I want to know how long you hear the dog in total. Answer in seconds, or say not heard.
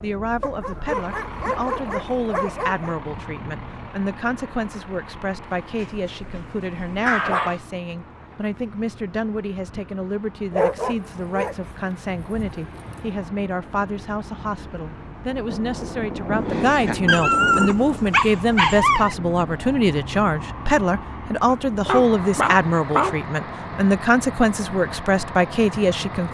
11 s.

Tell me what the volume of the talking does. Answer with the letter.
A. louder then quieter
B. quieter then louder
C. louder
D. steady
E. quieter
C.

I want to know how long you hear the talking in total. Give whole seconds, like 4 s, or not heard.
26 s.